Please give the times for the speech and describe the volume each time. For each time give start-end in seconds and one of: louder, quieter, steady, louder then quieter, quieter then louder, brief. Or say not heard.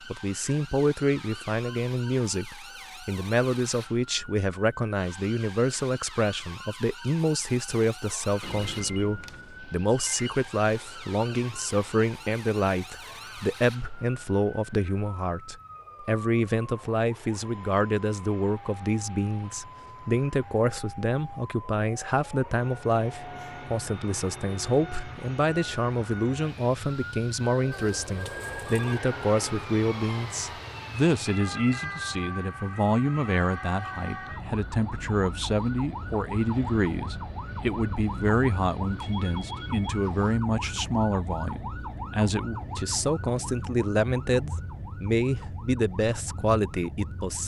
0.1-47.4 steady.